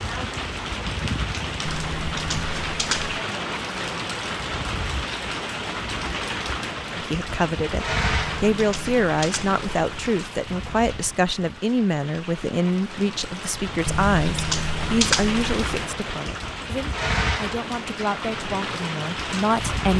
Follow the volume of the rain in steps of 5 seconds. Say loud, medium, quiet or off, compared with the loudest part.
loud, loud, medium, loud.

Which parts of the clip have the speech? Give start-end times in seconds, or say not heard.
6.9-19.9.